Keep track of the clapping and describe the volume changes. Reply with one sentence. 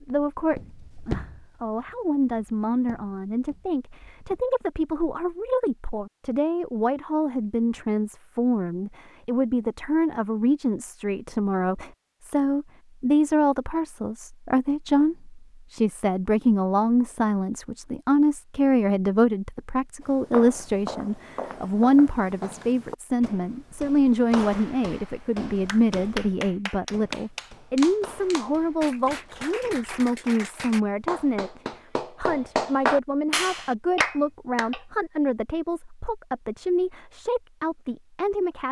The loudness of the clapping goes up.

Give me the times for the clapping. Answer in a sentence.
The clapping can be heard from 25.6 to 34.9 s.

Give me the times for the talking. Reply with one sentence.
You can hear the talking from 0.0 to 38.6 s.